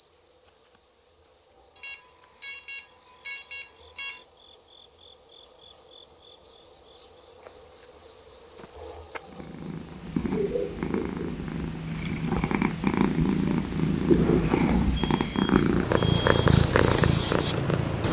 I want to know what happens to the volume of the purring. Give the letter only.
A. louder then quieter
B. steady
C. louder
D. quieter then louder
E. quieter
C.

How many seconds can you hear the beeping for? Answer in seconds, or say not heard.
4 s.